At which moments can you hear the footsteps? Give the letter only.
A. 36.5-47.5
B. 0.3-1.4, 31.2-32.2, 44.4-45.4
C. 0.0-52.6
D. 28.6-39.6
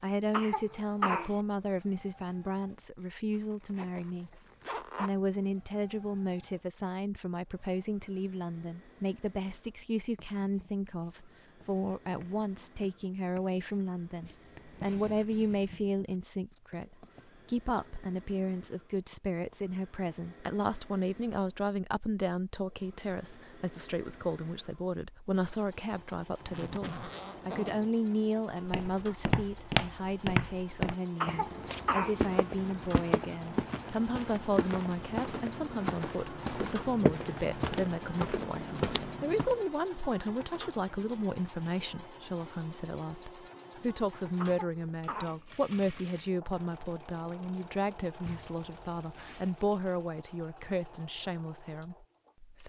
D.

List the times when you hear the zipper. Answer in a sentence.
You can hear the zipper from 3.4 to 5.2 s, from 26.4 to 27.9 s and from 48.2 to 49.6 s.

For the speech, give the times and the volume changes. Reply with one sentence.
You can hear the speech from 0.0 to 52.6 s, at a steady volume.